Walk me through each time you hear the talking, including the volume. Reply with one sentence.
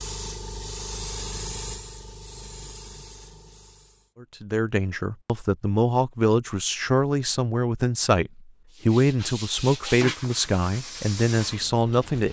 You can hear the talking from 4.2 to 12.2 s, at a steady volume.